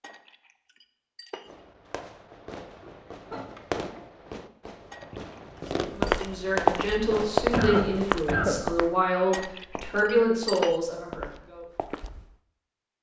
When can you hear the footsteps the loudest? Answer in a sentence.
The loudest moment of the footsteps is at 7 seconds.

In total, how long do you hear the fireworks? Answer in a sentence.
You can hear the fireworks for 7 seconds altogether.